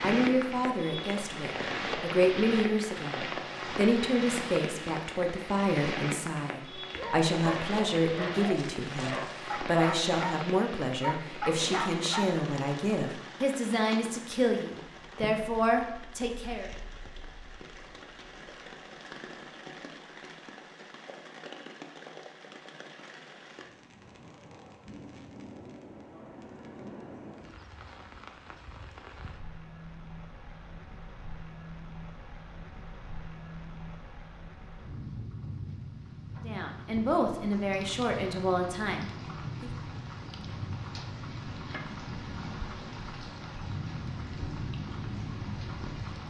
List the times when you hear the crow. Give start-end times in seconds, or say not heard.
not heard.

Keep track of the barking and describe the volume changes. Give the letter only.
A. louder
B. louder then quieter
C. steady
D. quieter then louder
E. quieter
A.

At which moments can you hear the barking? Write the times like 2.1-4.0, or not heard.
6.9-12.4.